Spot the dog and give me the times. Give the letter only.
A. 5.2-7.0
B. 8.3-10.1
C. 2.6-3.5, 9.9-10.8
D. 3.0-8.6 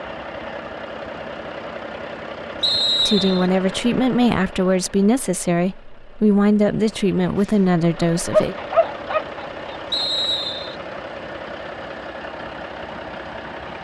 B.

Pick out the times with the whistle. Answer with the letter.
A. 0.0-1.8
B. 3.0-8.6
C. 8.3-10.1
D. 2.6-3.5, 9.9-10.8
D.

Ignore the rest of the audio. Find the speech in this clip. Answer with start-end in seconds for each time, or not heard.
3.0-8.6.